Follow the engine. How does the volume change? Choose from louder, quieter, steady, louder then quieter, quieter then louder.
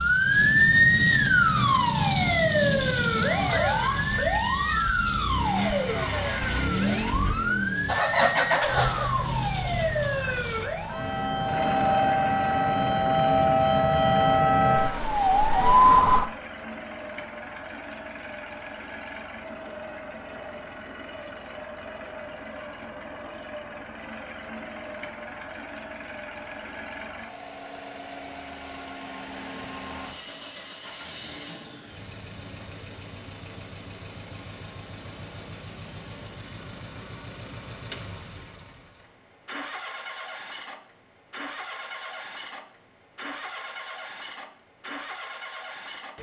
quieter.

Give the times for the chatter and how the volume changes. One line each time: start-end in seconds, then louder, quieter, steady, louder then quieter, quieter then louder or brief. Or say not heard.
not heard.